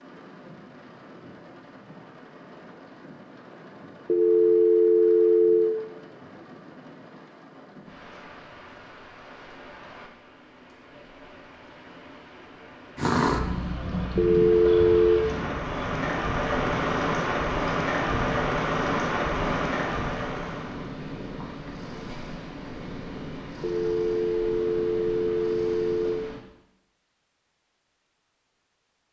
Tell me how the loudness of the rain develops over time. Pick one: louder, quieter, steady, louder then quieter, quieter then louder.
louder.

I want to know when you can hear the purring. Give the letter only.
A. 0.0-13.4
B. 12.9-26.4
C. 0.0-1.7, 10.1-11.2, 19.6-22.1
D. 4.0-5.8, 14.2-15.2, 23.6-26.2
B.